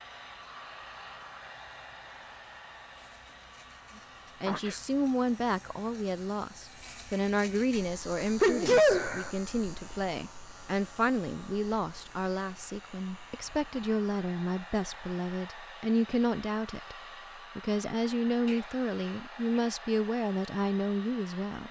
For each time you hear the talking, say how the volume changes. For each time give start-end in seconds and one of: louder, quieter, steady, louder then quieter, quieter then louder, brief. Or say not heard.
4.0-21.6 steady.